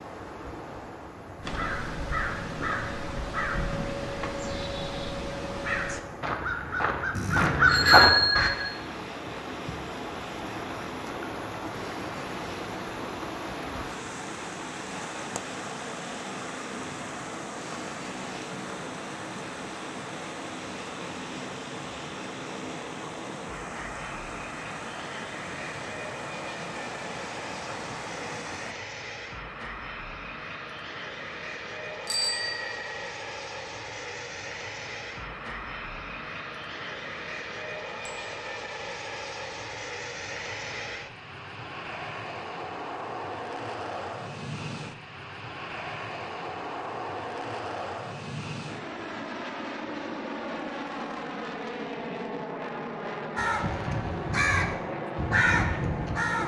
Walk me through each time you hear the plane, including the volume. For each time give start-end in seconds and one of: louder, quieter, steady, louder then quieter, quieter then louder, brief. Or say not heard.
8.4-56.4 louder.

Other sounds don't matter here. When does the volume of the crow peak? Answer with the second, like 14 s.
8 s.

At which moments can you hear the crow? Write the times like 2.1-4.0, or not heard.
1.4-8.5, 53.4-56.4.